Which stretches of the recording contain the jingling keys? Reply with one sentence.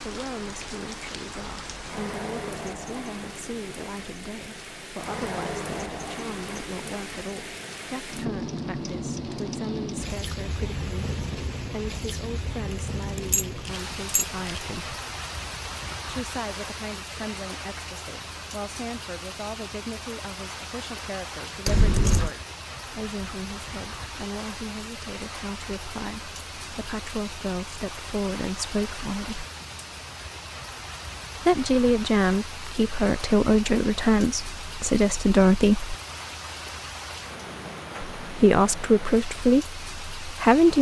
The jingling keys can be heard from 13.2 to 14.6 s and from 21.6 to 22.4 s.